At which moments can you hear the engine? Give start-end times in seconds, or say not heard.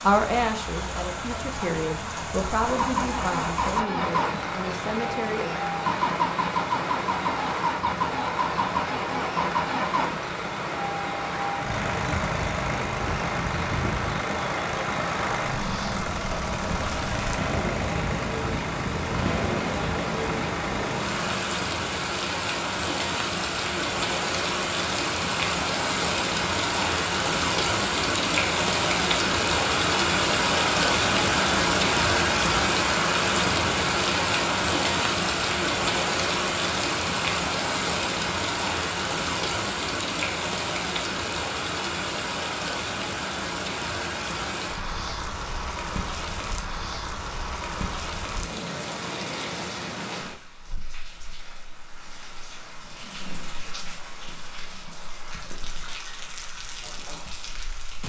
2.6-21.4.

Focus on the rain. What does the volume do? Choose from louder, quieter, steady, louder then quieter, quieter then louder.
louder then quieter.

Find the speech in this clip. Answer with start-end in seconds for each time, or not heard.
0.0-5.5.